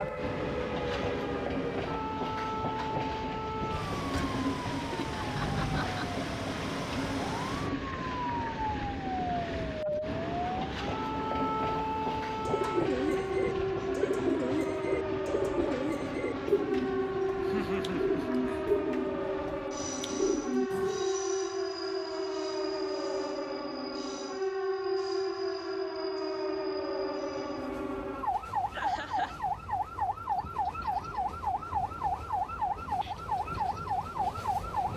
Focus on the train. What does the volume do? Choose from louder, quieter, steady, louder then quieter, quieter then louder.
quieter.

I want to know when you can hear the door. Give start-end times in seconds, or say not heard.
not heard.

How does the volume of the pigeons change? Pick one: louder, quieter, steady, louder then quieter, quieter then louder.
steady.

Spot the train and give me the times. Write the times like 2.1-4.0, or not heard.
0.0-34.9.